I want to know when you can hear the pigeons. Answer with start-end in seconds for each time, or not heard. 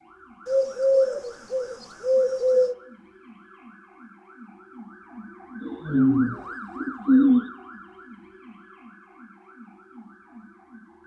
0.5-2.8, 5.6-7.5.